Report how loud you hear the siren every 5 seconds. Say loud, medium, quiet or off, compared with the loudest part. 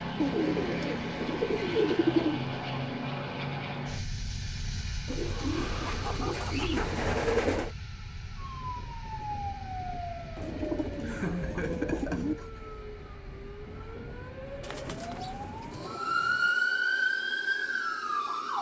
off, medium, quiet, loud.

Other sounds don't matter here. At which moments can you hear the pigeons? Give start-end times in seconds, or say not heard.
0.2-2.5, 5.0-7.7, 10.3-12.3, 14.6-16.5.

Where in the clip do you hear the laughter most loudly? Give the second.
11 s.